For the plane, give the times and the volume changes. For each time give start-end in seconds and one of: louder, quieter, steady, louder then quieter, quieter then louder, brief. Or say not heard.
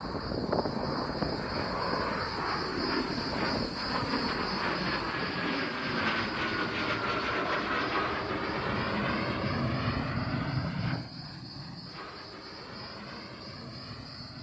0.0-14.3 quieter.